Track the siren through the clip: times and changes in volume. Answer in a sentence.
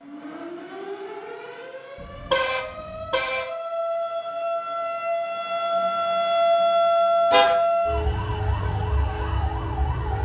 The siren can be heard from 0.0 to 10.2 s, getting louder then quieter.